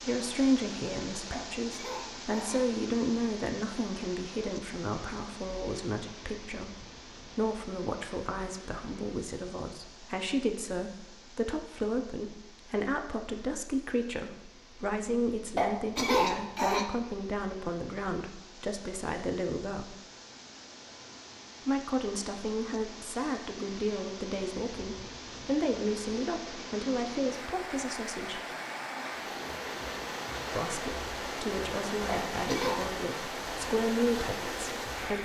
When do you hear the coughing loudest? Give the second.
16 s.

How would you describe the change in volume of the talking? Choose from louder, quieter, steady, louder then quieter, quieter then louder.
steady.